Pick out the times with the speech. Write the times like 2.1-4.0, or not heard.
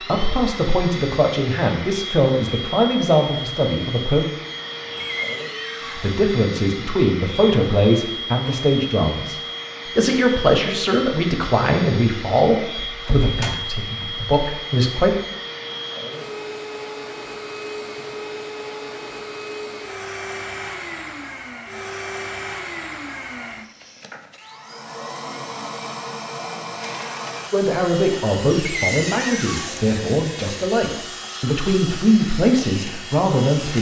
0.0-4.2, 5.8-15.2, 27.5-33.7.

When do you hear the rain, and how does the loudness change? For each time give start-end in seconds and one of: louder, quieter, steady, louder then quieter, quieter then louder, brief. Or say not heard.
not heard.